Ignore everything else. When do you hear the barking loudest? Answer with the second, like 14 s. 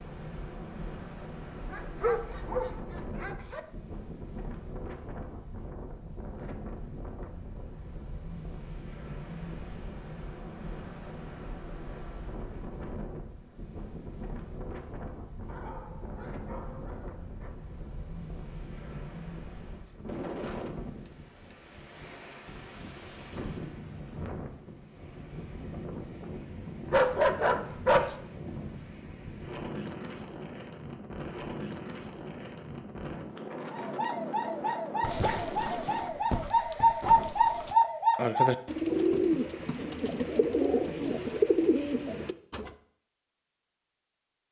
27 s.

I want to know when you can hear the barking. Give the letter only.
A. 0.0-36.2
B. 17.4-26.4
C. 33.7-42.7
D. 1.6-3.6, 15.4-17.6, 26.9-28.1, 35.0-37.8
D.